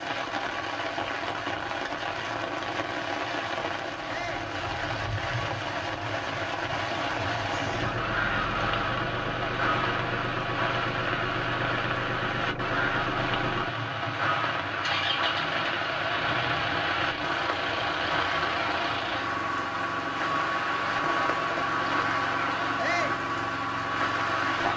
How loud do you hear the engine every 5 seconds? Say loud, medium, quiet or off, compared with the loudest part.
off, loud, loud, loud, loud.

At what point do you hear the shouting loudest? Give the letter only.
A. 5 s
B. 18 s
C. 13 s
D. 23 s
D.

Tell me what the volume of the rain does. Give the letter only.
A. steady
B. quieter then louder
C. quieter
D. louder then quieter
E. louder
A.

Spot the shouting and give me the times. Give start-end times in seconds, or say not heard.
4.0-4.5, 22.8-23.2.